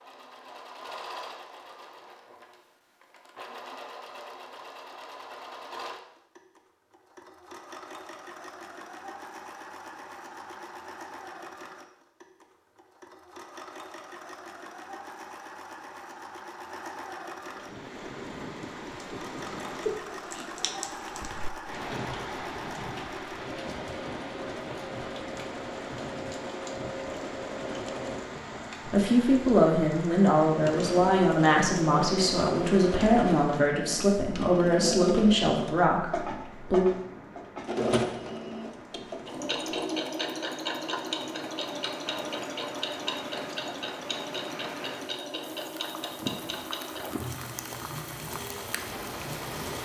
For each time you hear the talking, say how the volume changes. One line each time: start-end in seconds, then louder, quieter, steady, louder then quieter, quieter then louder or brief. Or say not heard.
28.9-36.9 steady.